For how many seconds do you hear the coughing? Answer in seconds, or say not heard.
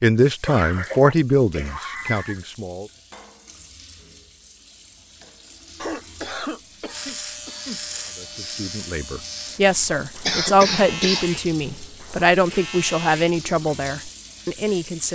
5 s.